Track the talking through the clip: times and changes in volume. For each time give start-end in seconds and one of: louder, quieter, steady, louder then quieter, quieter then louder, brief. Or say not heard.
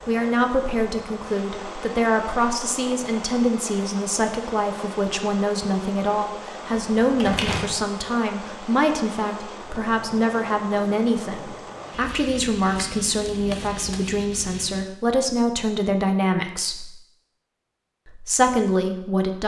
0.1-16.9 steady
18.1-19.4 brief.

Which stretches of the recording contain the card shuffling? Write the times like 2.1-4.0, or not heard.
6.8-7.8, 12.7-14.2.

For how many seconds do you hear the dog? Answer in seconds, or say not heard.
not heard.